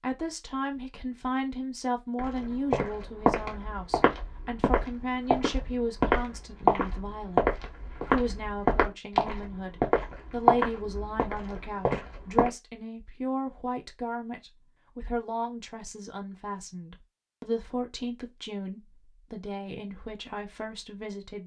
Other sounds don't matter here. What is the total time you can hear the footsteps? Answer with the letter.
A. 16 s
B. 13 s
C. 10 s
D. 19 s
C.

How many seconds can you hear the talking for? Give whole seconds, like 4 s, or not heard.
21 s.